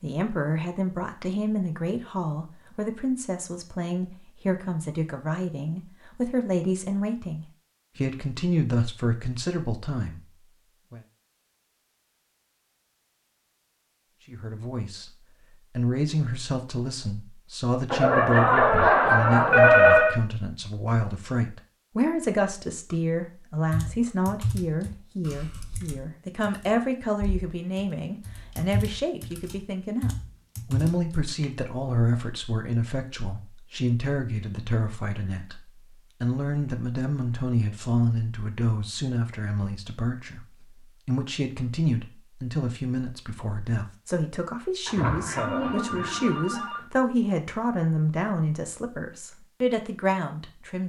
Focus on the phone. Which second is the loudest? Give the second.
20 s.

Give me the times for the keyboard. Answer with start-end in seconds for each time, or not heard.
23.7-31.4.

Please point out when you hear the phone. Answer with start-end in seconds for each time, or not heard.
17.9-20.1, 44.9-46.9.